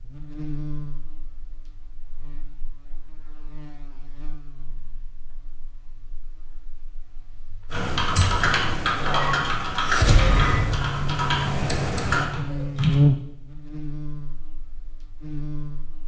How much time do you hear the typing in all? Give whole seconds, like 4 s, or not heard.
5 s.